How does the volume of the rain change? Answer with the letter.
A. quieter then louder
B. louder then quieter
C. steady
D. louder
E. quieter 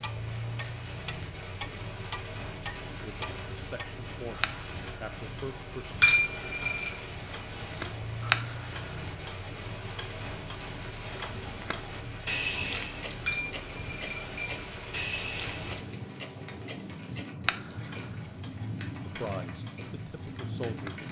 C.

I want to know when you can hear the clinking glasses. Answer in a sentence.
You can hear the clinking glasses from 6.0 to 6.9 s and from 13.2 to 14.6 s.